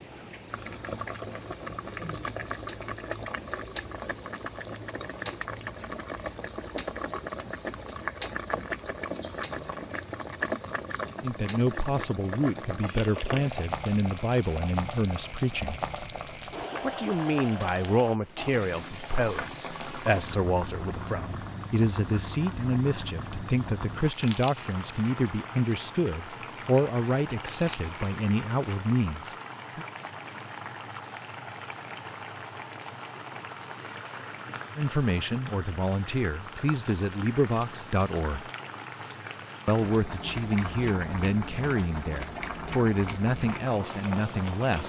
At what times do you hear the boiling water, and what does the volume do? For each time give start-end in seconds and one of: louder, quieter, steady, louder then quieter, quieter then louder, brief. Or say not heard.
0.0-44.8 steady.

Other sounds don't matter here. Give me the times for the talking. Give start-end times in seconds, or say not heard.
11.2-15.8, 16.8-29.9, 34.8-38.5, 39.6-44.8.